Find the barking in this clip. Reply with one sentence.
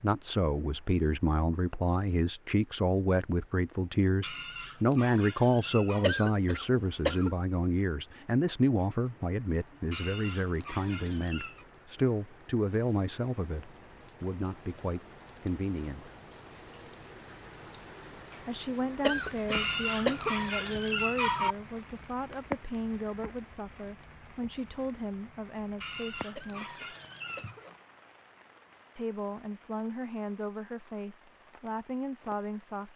The barking can be heard from 4.2 to 6.1 s, from 9.9 to 11.7 s, from 19.5 to 21.6 s and from 25.8 to 27.6 s.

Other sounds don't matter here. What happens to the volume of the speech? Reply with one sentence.
The loudness of the speech goes down.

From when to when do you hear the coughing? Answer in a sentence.
You can hear the coughing from 6.0 to 7.3 s, from 19.0 to 20.4 s and from 26.4 to 27.6 s.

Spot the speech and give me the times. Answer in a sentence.
The speech can be heard from 0.0 to 16.1 s, from 18.4 to 26.8 s and from 28.9 to 32.9 s.